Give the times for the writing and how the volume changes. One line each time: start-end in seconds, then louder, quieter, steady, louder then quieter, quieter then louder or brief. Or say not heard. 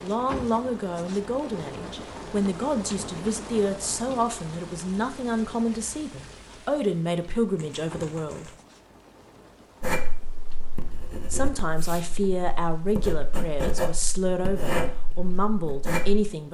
9.8-16.3 louder.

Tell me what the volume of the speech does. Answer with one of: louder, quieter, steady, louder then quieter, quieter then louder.
steady.